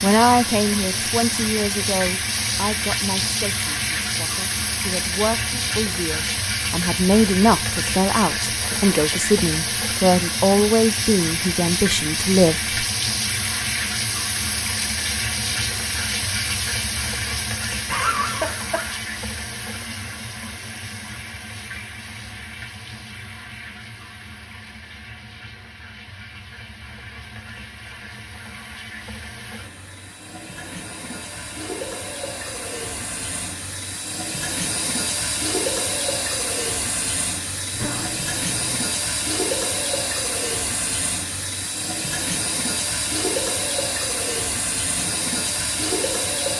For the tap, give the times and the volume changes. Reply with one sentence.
You can hear the tap from 0.0 to 46.5 s, getting quieter then louder.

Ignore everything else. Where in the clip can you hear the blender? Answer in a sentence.
The blender can't be heard in this clip.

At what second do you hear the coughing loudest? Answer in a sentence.
The volume of the coughing peaks at 18 seconds.